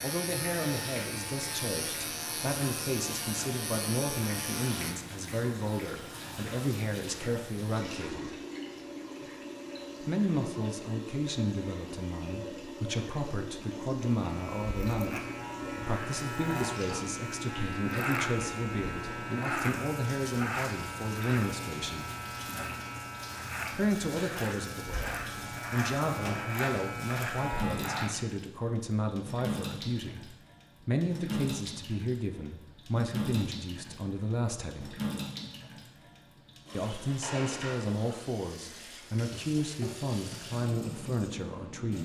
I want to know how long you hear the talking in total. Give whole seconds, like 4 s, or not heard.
37 s.